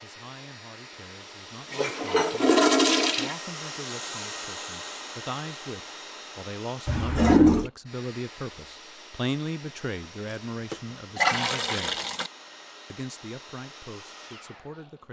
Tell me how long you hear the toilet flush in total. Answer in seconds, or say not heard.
4 s.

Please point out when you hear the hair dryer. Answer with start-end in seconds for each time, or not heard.
0.0-15.0.